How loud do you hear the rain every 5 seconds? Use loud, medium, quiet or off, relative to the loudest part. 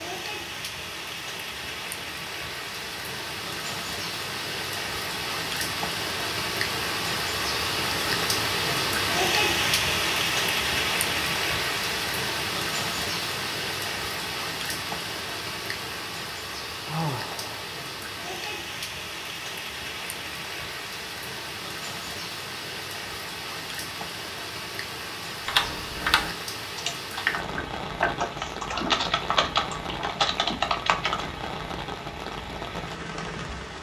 medium, loud, loud, medium, medium, medium, medium.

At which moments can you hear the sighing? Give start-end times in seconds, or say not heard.
16.9-17.6.